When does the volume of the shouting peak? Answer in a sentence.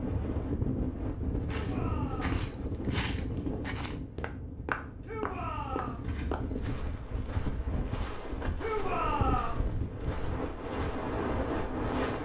The loudest moment of the shouting is at 9 seconds.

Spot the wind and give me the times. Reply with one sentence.
You can hear the wind from 0.0 to 12.2 s.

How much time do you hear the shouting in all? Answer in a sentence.
The shouting can be heard for 3 seconds in total.